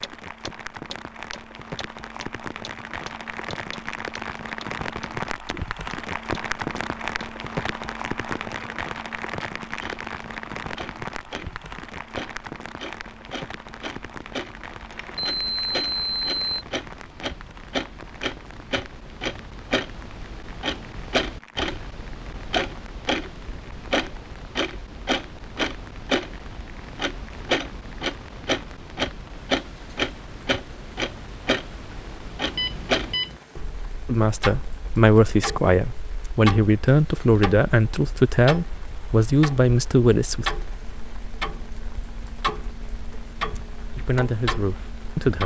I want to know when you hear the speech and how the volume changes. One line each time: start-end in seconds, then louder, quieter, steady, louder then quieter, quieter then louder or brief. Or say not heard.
34.0-40.5 steady
44.0-45.4 brief.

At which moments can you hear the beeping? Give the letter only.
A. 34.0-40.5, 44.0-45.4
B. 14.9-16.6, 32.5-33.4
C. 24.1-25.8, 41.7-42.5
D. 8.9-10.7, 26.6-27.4
B.